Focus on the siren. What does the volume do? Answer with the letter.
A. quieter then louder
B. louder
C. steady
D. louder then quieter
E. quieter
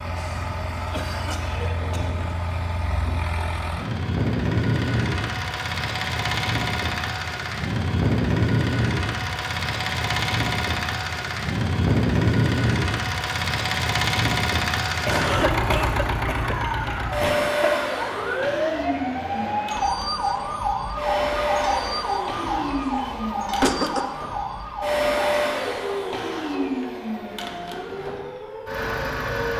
E.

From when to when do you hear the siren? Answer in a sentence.
The siren can be heard from 16.4 to 29.5 s.